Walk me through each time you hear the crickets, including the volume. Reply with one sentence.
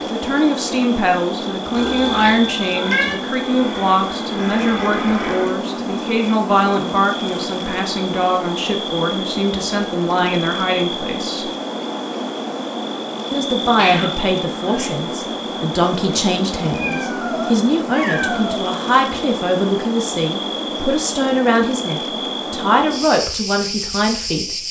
The crickets can be heard from 0.0 to 24.6 s, at a steady volume.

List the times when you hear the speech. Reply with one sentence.
The speech can be heard from 0.1 to 11.5 s and from 13.3 to 24.6 s.